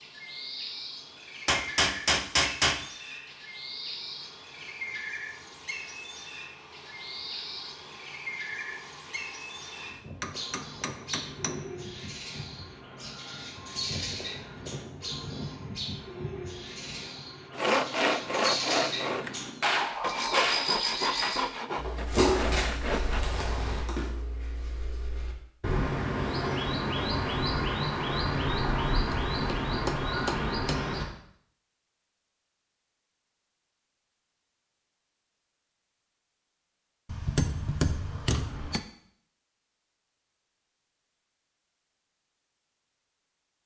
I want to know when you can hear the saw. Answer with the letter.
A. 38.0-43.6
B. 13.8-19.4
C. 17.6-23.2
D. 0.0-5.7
C.